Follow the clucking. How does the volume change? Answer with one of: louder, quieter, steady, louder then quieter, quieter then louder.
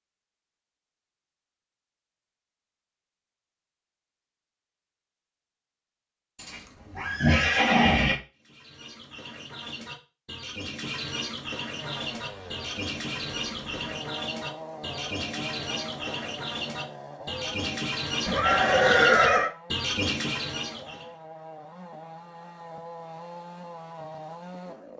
louder.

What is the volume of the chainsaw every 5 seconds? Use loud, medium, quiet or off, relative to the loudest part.
off, off, loud, loud, loud.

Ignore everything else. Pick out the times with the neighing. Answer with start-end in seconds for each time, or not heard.
6.4-8.2, 18.2-19.5.